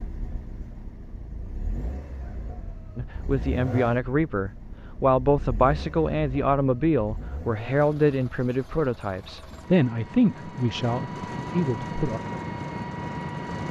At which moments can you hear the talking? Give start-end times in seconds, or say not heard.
3.0-12.2.